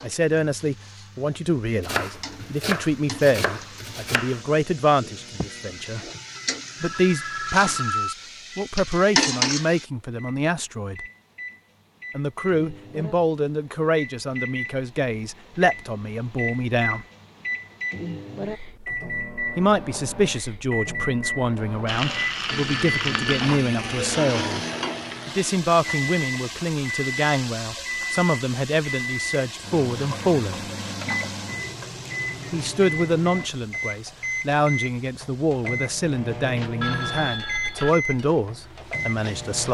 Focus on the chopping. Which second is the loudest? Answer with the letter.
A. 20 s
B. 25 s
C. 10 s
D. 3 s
D.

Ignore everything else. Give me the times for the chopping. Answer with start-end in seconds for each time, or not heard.
1.8-4.4.